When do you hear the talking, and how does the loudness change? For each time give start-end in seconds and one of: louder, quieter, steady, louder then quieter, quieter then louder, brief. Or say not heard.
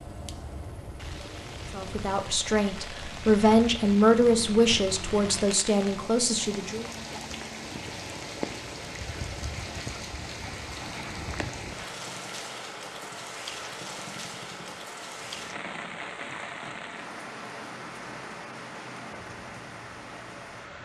1.7-6.8 louder then quieter.